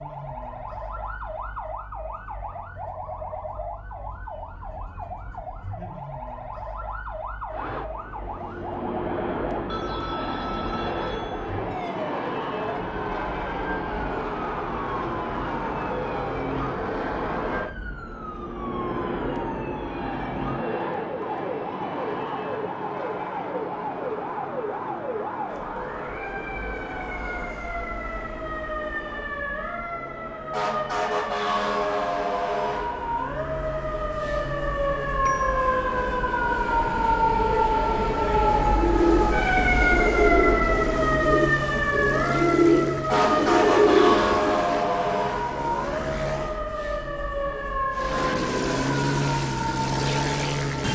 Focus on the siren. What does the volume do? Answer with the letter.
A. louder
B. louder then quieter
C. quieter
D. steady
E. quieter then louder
A.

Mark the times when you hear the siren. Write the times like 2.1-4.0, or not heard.
0.0-50.8.